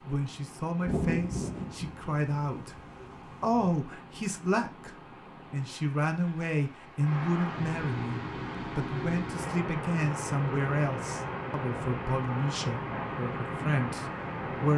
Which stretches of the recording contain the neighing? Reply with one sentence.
You can't hear the neighing here.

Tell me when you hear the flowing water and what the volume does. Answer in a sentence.
The flowing water can be heard from 0.0 to 14.7 s, getting louder.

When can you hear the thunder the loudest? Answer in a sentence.
The volume of the thunder peaks at 1 second.